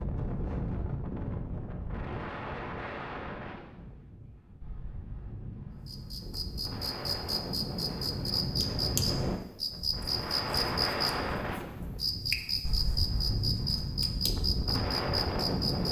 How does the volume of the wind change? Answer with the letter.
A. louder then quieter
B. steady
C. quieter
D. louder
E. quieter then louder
E.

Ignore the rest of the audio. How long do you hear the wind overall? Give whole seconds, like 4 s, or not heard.
16 s.